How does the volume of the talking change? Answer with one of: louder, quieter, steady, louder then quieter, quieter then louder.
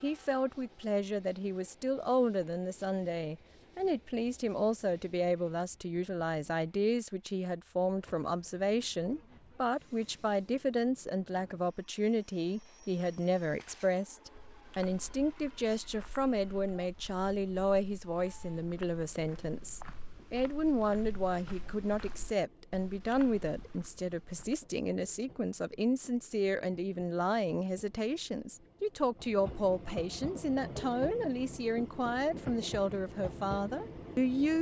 steady.